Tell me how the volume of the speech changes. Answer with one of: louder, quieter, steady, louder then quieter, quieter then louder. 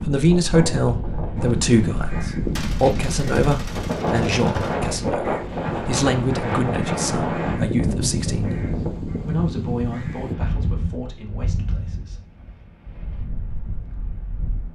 quieter.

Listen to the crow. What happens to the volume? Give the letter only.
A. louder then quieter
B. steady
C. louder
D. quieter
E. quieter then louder
B.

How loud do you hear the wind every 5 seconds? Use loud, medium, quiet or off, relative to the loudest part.
loud, loud, medium.